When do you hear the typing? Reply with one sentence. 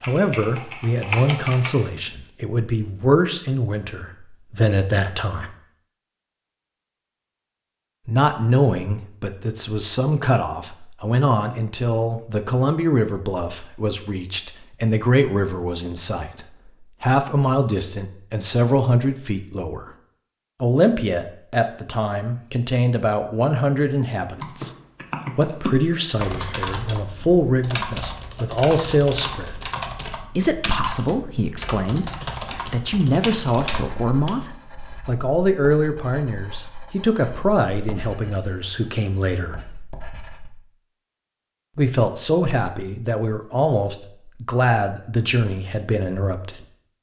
The typing can be heard from 0.0 to 1.9 s and from 24.4 to 34.3 s.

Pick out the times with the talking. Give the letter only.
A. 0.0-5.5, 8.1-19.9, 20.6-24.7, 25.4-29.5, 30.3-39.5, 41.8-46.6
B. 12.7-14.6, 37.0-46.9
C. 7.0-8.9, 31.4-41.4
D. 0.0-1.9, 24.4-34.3
A.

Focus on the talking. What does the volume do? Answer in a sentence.
The loudness of the talking stays about the same.